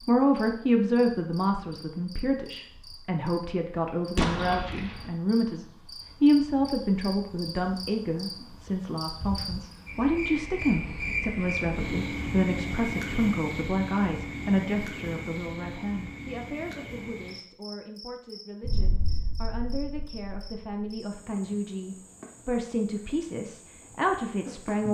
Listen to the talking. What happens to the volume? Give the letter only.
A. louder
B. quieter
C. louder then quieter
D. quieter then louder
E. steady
D.